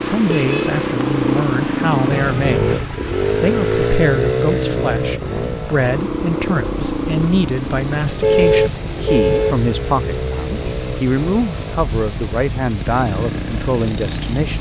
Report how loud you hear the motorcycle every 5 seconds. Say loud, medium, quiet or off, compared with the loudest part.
loud, medium, medium.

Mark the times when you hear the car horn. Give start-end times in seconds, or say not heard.
0.2-0.8, 8.2-9.6.